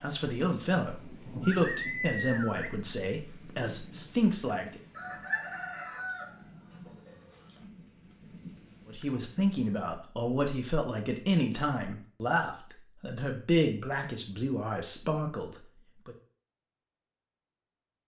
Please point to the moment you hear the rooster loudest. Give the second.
5 s.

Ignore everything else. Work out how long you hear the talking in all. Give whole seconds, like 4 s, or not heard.
12 s.